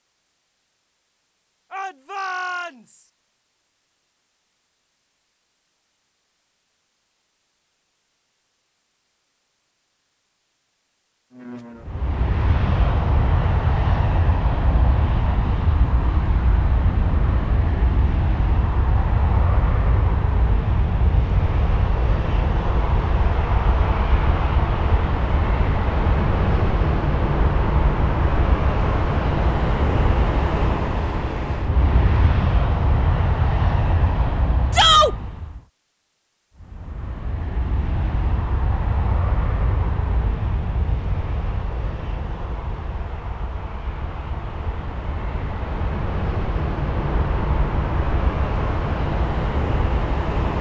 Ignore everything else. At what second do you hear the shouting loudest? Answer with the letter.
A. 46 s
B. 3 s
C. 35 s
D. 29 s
C.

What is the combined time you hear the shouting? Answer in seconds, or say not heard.
2 s.